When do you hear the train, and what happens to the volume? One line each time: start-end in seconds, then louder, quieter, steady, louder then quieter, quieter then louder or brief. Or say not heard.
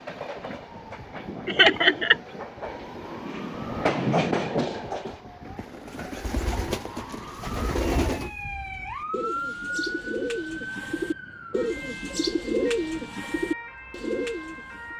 0.0-5.2 louder.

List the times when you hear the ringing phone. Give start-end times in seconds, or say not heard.
not heard.